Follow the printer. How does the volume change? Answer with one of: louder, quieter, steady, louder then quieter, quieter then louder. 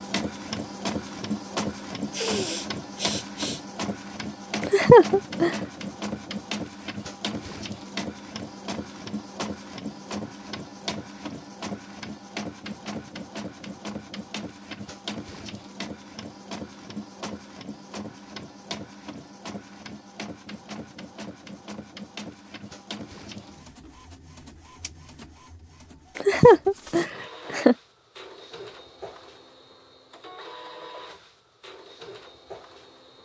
quieter.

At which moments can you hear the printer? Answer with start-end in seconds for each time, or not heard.
0.0-33.1.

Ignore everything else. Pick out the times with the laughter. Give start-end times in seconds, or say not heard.
4.6-5.5, 26.1-27.8.